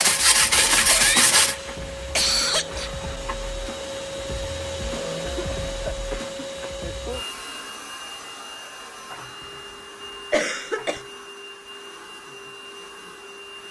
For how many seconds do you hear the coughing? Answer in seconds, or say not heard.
4 s.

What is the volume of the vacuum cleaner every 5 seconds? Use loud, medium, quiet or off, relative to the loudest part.
loud, loud, medium.